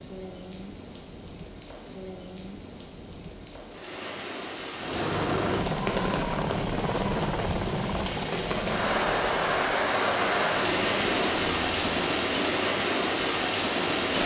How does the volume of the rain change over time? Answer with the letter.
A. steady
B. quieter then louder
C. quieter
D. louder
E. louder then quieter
D.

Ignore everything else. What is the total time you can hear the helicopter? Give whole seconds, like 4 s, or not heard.
7 s.